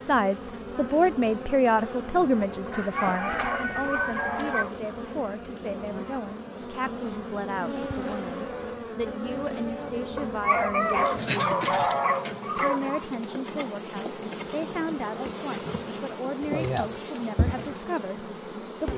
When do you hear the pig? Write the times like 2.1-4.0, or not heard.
not heard.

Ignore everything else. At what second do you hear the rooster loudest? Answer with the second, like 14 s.
4 s.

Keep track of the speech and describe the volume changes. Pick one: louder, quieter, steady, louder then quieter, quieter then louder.
quieter.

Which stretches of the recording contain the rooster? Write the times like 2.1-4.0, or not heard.
2.7-4.7.